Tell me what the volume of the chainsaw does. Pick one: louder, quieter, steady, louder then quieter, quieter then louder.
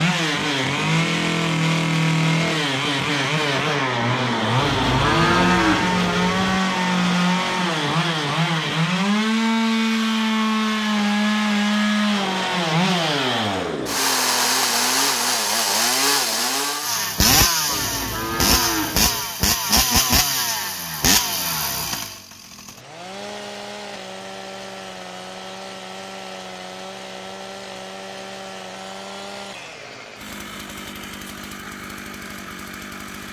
quieter.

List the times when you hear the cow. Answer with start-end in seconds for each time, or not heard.
4.5-6.6, 17.6-19.3.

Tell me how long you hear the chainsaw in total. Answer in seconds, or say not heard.
33 s.